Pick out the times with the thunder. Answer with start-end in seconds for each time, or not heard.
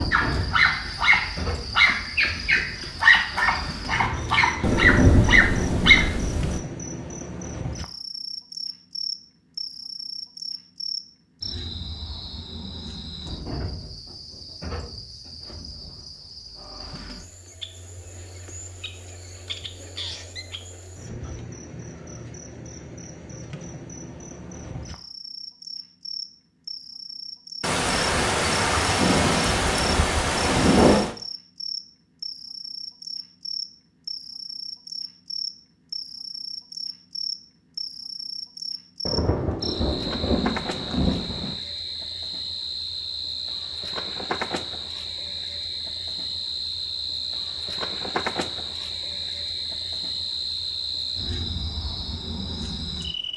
4.6-6.6, 27.6-31.1, 39.0-41.5.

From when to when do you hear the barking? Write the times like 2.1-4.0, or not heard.
0.1-6.2.